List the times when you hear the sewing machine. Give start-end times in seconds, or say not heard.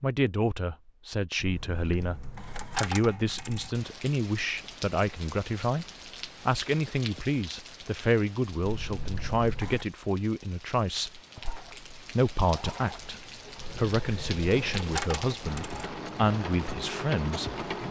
11.3-17.8.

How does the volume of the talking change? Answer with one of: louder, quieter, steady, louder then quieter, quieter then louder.
steady.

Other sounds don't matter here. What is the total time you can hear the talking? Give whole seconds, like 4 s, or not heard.
17 s.